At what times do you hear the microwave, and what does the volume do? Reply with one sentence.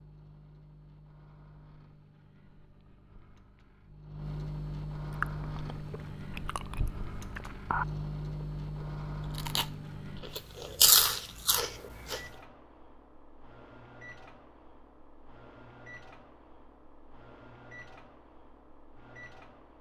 The microwave can be heard from 0.0 to 19.7 s, getting louder then quieter.